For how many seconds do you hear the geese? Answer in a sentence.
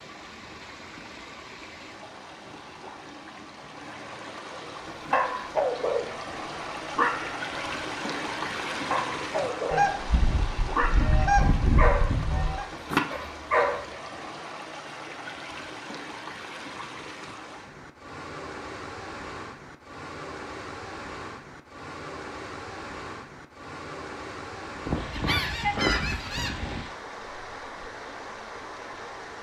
You can hear the geese for 5 seconds altogether.